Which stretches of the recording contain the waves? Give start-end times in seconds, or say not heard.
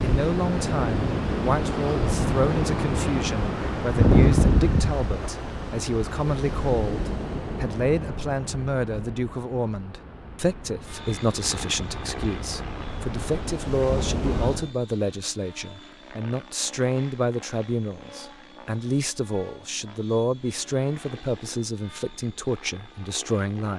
0.0-14.7.